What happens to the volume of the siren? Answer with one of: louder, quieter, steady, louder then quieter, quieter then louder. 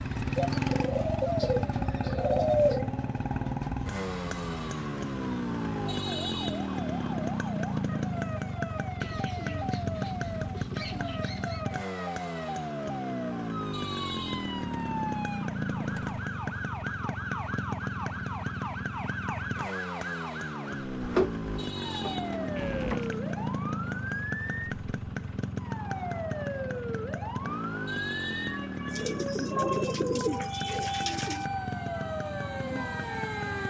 louder.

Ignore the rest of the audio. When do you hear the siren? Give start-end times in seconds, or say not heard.
0.0-33.6.